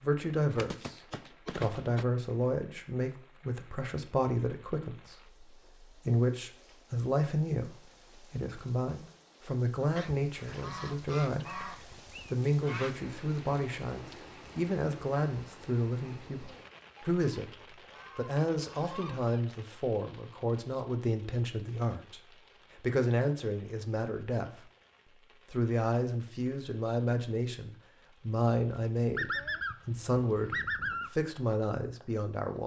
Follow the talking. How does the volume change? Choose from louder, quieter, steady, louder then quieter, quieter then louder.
steady.